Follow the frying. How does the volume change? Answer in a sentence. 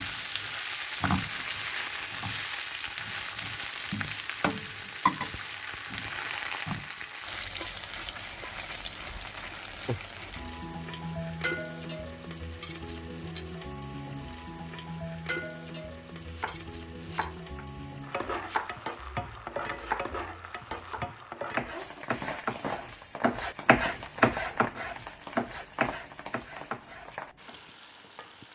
The volume of the frying goes down.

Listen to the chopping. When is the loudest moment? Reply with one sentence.
The loudest moment of the chopping is at 24 seconds.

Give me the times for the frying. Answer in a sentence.
The frying can be heard from 0.0 to 28.4 s.